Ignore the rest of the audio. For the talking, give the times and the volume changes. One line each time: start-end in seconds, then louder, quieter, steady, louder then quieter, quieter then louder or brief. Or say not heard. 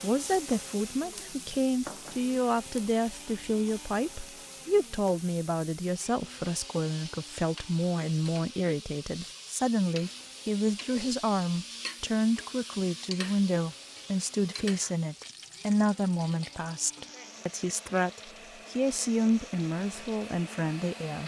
0.0-21.2 steady.